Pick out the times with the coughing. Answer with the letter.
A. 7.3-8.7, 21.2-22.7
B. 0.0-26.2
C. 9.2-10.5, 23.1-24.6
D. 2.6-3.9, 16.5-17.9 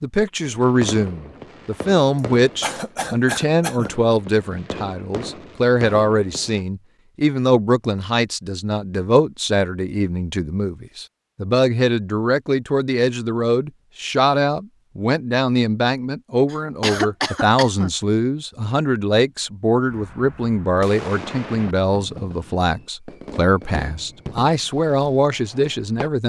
D.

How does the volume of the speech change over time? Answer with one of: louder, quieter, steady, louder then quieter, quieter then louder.
steady.